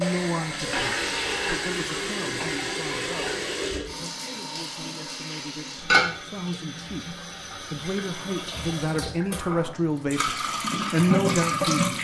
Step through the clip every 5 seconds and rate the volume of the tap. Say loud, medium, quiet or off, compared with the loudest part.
medium, medium, loud.